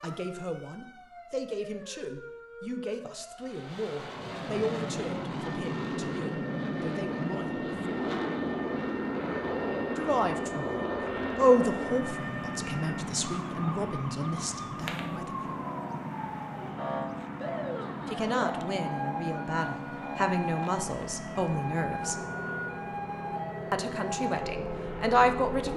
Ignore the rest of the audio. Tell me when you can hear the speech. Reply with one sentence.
You can hear the speech from 0.0 to 8.1 s, from 9.9 to 15.6 s, from 18.1 to 22.1 s and from 23.7 to 25.7 s.